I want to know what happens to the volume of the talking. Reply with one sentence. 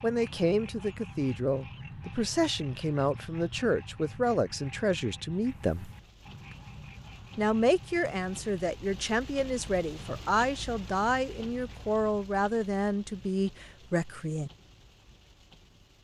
The volume of the talking stays about the same.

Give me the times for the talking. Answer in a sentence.
You can hear the talking from 0.0 to 5.9 s and from 7.3 to 14.5 s.